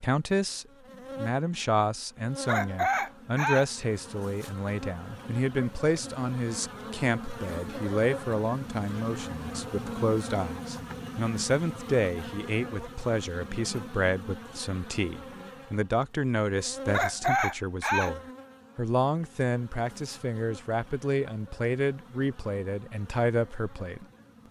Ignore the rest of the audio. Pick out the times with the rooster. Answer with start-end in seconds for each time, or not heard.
2.5-3.6, 16.9-18.1.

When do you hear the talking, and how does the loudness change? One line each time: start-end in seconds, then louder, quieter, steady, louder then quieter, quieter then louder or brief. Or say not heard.
0.0-24.4 steady.